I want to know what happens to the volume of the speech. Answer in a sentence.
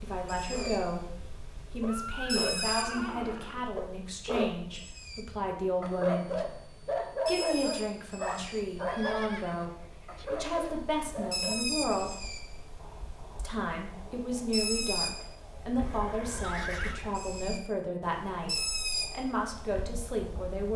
The loudness of the speech stays about the same.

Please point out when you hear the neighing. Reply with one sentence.
The neighing can be heard from 1.8 to 3.6 s, from 8.8 to 10.2 s and from 15.8 to 17.1 s.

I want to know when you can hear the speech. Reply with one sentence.
You can hear the speech from 0.0 to 6.3 s, from 7.2 to 12.2 s and from 13.3 to 20.7 s.